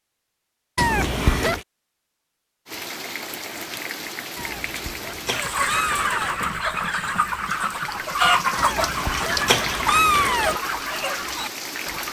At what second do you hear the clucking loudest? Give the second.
8 s.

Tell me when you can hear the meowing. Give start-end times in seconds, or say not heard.
0.8-1.6, 4.3-6.3, 8.6-10.6.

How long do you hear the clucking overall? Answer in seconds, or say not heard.
7 s.